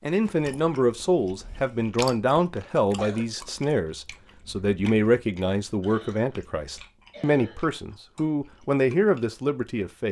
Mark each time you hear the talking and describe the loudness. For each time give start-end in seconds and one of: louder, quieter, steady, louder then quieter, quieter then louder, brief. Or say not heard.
0.0-10.0 steady.